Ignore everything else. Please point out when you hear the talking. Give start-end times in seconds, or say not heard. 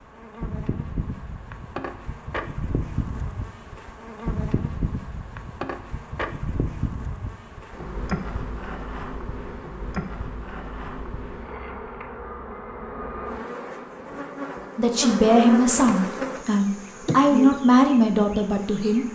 14.8-19.1.